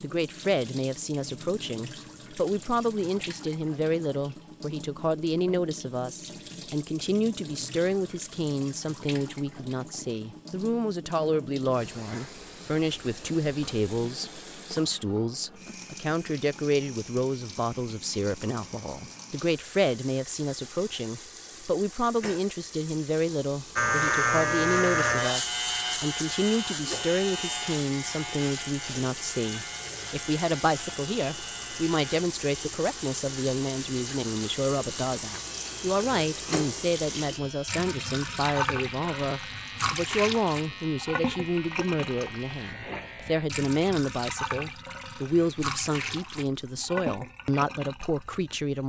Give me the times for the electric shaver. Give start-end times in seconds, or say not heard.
23.8-43.5.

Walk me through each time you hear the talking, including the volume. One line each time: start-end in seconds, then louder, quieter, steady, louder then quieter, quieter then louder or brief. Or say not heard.
0.0-48.8 steady.